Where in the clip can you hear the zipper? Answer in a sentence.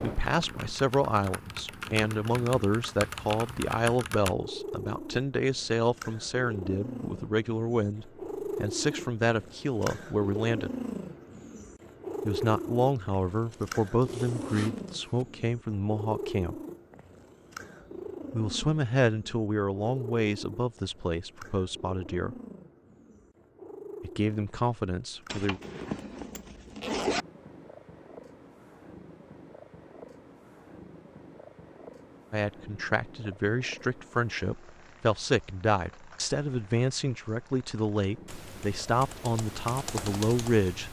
You can hear the zipper from 13.5 to 15.2 s and from 25.2 to 27.2 s.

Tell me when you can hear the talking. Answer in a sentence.
The talking can be heard from 0.0 to 10.7 s, from 12.2 to 16.6 s, from 18.3 to 22.4 s, from 24.0 to 25.6 s and from 32.3 to 40.8 s.